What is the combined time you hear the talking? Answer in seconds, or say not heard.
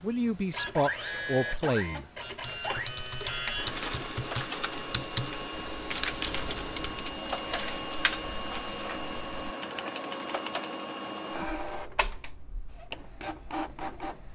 2 s.